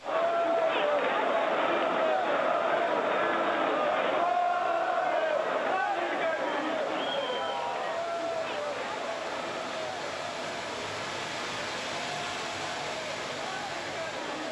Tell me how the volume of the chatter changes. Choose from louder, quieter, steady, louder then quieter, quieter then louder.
quieter.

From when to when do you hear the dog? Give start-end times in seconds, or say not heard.
not heard.